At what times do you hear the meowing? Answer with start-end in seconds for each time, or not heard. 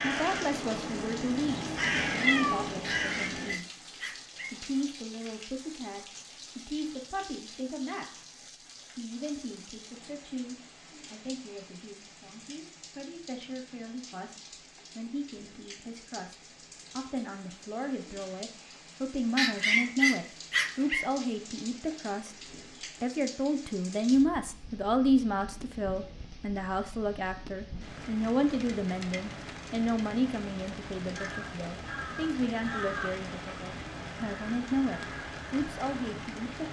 2.2-2.8.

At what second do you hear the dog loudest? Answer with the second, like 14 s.
20 s.